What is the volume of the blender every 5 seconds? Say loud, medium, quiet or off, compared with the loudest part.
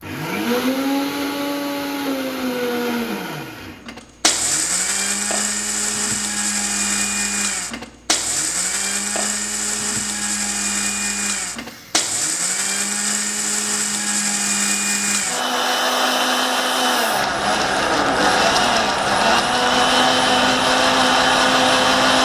medium, medium, medium, loud, loud.